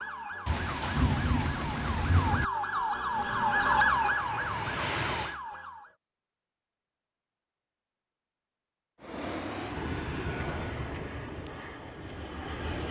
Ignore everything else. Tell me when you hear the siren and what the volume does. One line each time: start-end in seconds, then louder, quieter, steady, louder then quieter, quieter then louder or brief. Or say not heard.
0.0-6.0 louder then quieter.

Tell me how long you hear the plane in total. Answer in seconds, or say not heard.
6 s.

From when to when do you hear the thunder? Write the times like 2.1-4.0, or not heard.
0.5-2.5.